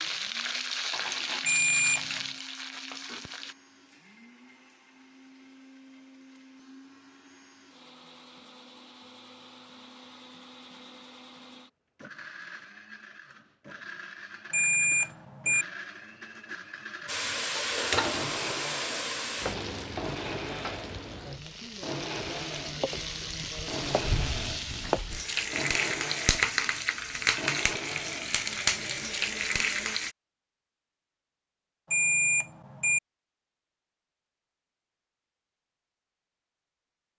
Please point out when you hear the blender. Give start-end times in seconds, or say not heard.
0.0-30.0.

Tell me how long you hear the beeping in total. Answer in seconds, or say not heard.
3 s.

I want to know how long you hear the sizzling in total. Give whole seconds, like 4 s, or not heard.
17 s.